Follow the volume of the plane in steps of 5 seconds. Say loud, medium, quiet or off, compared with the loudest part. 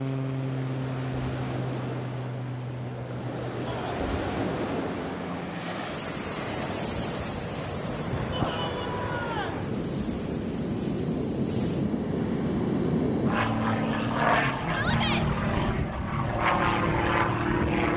medium, medium, loud, loud.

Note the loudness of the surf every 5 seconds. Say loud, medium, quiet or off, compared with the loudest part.
loud, loud, medium, off.